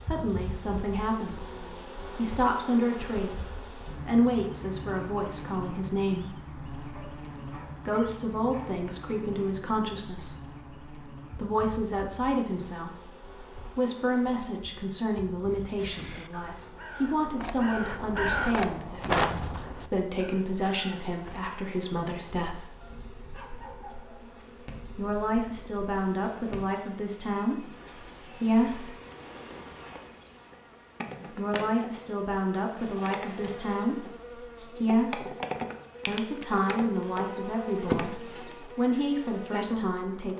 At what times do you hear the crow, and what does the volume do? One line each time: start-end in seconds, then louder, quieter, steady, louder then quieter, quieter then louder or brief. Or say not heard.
15.5-21.6 louder then quieter.